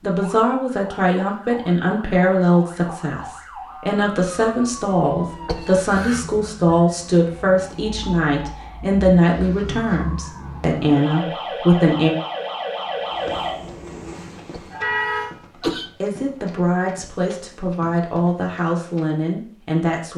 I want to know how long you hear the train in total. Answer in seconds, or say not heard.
2 s.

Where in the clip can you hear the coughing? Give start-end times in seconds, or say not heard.
5.5-6.2, 14.5-15.9.